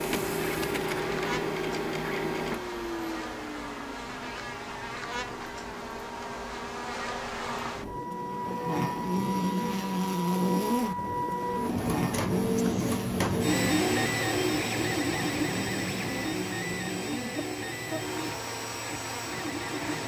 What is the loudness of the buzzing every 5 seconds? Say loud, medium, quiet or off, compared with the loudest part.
medium, loud, loud, medium.